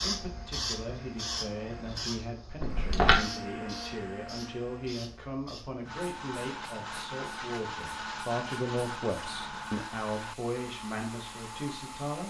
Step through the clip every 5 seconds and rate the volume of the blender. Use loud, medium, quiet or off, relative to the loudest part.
medium, loud, medium.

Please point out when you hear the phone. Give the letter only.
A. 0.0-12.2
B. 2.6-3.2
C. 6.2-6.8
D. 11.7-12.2
B.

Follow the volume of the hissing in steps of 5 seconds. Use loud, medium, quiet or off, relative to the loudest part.
loud, quiet, medium.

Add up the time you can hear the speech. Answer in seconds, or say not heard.
12 s.